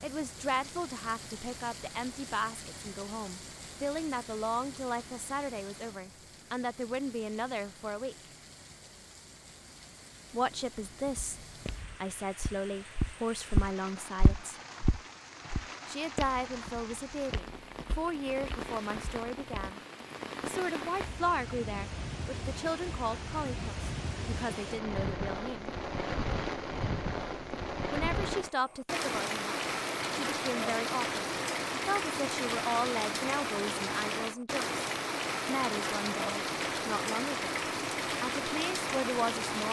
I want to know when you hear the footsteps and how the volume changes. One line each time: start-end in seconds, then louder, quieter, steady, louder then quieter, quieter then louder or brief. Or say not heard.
10.8-19.8 louder then quieter.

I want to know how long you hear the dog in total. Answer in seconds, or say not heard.
not heard.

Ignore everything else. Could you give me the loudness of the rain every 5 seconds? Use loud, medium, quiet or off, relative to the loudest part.
quiet, quiet, quiet, medium, medium, loud, loud, loud.